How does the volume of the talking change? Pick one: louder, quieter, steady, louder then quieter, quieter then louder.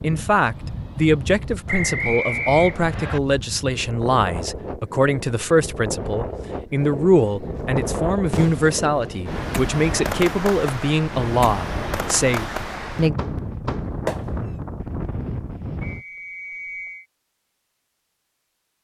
steady.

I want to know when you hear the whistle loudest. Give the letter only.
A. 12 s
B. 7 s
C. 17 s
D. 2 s
D.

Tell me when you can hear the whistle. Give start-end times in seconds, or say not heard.
1.6-3.2, 15.8-17.1.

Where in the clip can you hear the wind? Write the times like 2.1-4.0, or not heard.
0.0-16.1.